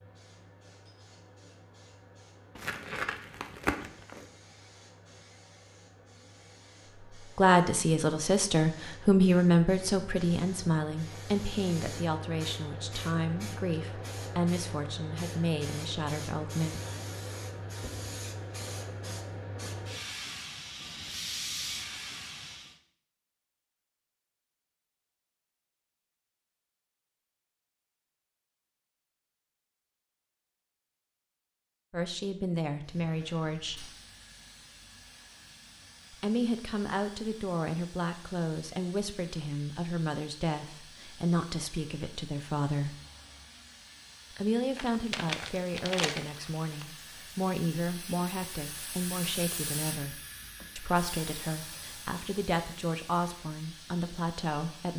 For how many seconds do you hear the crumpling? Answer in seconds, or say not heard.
4 s.